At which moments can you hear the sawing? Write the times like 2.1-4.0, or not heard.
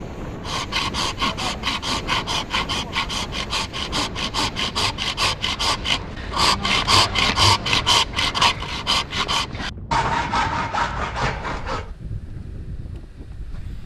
0.4-11.9.